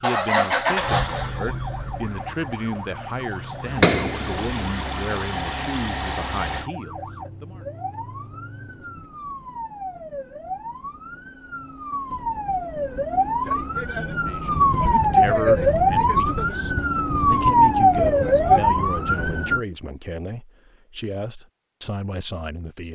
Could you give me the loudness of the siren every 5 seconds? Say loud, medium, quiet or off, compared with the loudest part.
quiet, quiet, medium, loud, off.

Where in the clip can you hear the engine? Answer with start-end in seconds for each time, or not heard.
0.0-6.7.